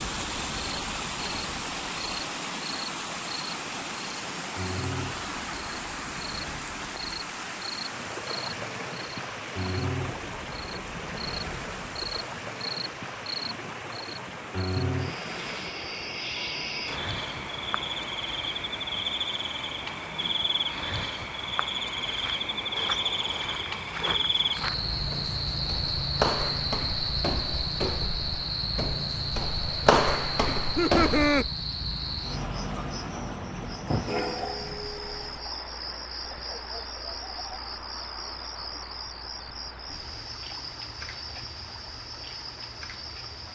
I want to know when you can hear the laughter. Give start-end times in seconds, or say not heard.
30.6-31.4.